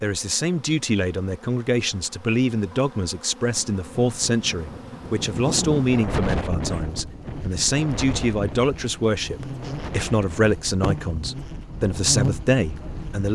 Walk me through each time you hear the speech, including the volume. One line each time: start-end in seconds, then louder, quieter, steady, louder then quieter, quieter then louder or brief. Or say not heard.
0.0-13.3 steady.